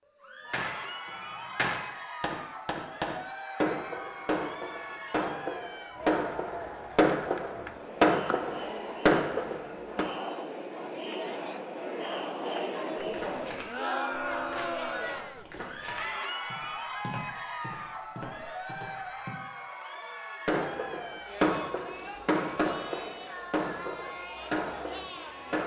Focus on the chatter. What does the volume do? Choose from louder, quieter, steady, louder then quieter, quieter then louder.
louder then quieter.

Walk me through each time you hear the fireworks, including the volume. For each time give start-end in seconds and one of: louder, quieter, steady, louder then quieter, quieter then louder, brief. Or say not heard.
0.5-10.1 louder
20.4-25.6 quieter.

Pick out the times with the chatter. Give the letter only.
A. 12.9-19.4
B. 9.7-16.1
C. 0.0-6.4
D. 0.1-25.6
D.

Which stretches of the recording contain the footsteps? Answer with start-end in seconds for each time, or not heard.
12.9-19.4.